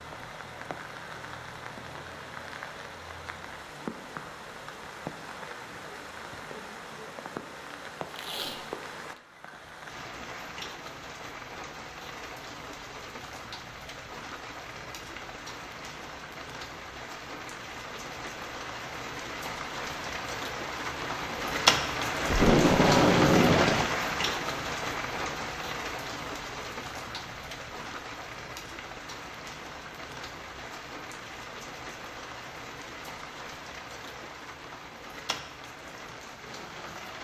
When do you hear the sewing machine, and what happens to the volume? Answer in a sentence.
The sewing machine can't be heard in this clip.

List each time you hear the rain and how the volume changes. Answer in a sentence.
The rain can be heard from 0.0 to 37.1 s, getting louder then quieter.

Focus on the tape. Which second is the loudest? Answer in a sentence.
The volume of the tape peaks at 23 seconds.